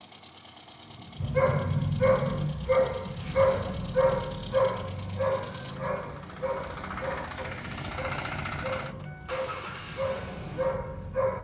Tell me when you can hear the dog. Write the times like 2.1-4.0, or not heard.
1.1-11.3.